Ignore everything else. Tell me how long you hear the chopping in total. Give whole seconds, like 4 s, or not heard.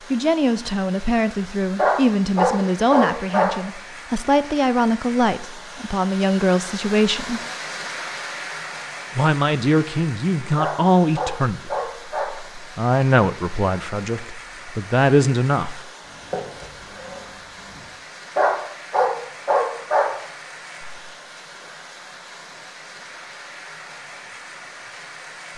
2 s.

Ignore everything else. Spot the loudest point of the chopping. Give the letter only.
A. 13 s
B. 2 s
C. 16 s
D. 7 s
C.